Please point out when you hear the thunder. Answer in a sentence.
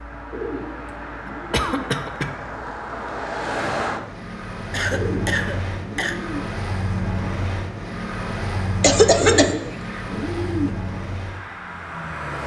You can't hear the thunder here.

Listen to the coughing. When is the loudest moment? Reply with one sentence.
The volume of the coughing peaks at 9 seconds.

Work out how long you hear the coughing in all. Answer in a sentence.
The coughing can be heard for 3 seconds in total.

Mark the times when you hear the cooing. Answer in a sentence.
The cooing can be heard from 0.3 to 1.9 s, from 4.9 to 6.5 s and from 9.2 to 10.8 s.